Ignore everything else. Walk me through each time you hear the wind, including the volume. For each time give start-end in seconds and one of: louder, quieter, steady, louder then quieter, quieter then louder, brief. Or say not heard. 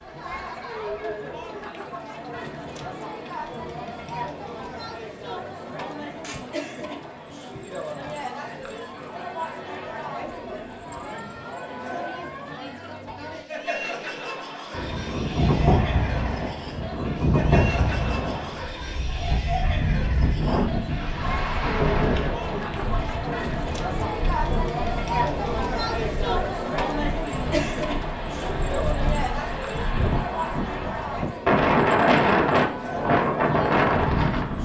14.7-34.6 quieter then louder.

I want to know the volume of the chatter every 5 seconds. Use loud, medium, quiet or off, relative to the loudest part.
medium, medium, medium, medium, loud, loud, medium.